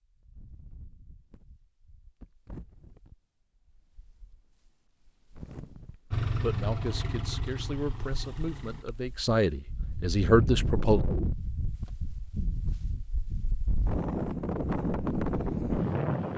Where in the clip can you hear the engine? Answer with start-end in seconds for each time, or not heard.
6.1-8.8.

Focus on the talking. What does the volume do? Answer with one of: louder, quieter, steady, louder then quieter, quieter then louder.
louder.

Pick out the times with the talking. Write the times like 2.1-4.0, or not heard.
6.4-11.0.